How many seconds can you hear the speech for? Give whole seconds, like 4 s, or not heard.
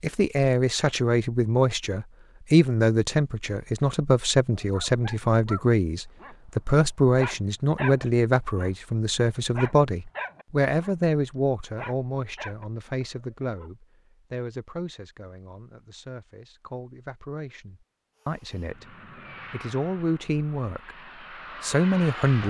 22 s.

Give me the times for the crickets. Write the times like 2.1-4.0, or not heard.
not heard.